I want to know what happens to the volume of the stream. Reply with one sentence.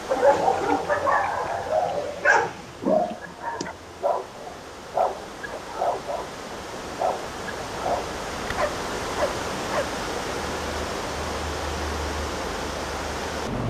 The volume of the stream goes up.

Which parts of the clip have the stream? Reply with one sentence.
You can hear the stream from 0.0 to 13.6 s.